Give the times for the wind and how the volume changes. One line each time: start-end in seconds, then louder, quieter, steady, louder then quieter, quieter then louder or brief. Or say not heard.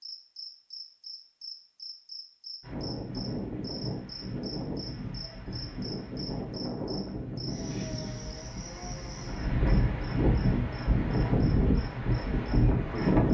2.6-13.2 louder.